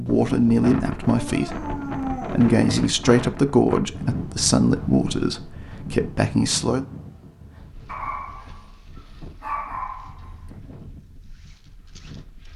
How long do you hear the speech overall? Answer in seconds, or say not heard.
7 s.